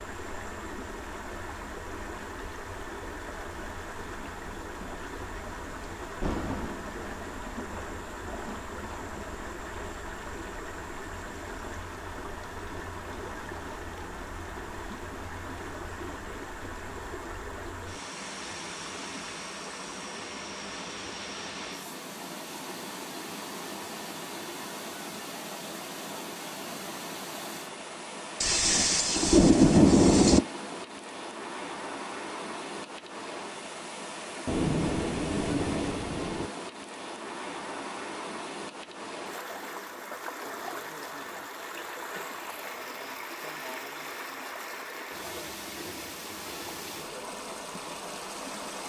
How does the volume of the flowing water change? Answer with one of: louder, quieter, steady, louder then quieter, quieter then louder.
steady.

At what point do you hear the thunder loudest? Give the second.
30 s.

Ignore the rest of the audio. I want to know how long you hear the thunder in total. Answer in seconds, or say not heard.
8 s.